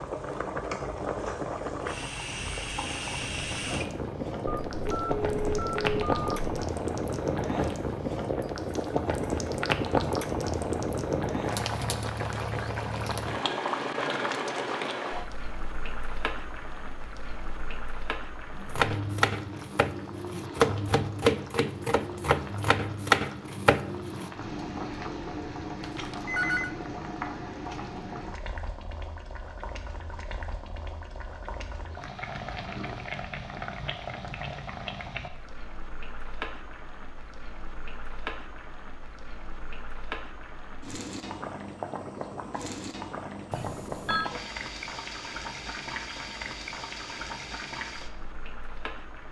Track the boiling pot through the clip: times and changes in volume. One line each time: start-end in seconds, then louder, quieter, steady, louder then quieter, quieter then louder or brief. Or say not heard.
0.0-49.2 quieter.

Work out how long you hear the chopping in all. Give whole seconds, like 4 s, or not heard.
6 s.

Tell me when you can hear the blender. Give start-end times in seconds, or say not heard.
not heard.